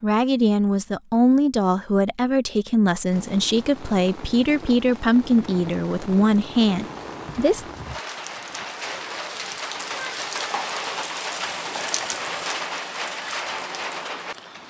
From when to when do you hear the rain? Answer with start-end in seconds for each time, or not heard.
3.1-14.6.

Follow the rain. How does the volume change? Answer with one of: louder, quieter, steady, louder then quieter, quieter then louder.
louder.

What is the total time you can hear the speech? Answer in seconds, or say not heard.
8 s.